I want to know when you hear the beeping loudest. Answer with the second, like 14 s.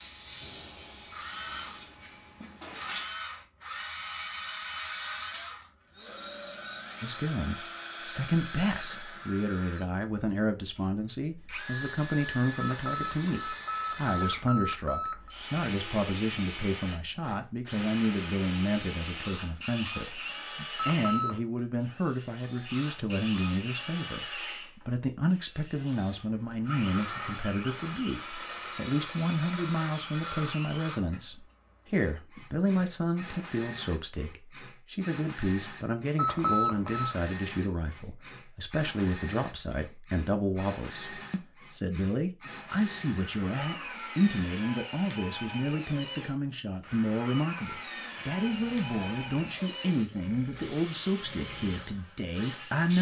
37 s.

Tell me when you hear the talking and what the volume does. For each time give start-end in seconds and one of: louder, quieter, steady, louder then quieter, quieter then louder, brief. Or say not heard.
7.0-52.9 steady.